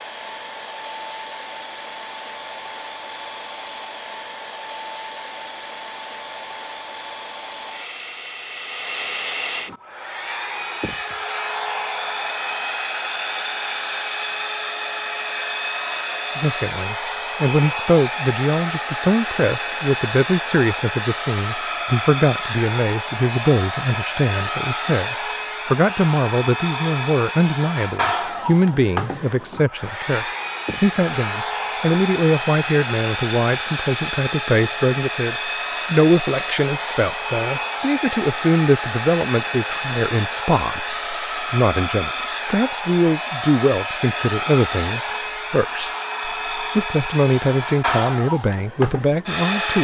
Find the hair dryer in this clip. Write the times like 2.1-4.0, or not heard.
0.0-49.7.